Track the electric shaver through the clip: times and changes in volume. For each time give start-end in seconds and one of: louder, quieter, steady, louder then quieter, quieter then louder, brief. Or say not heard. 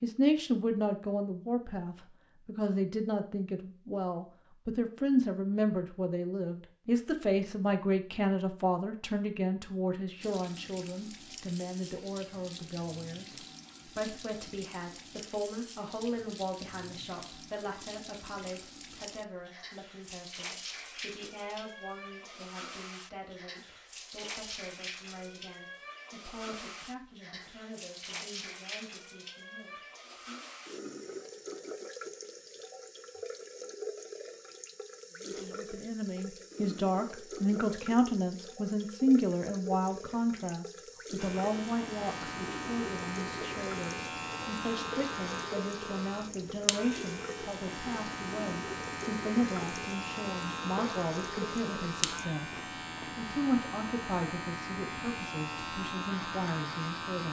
41.1-57.2 steady.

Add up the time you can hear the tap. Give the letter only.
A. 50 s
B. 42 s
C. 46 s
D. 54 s
B.